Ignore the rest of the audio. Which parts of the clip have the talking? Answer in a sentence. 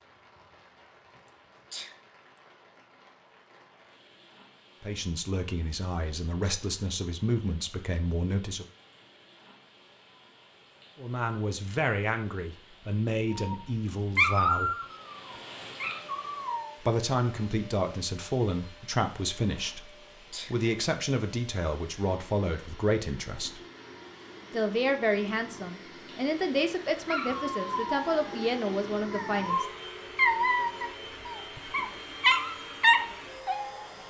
You can hear the talking from 4.8 to 8.7 s, from 11.0 to 14.7 s, from 16.8 to 23.6 s and from 24.5 to 29.6 s.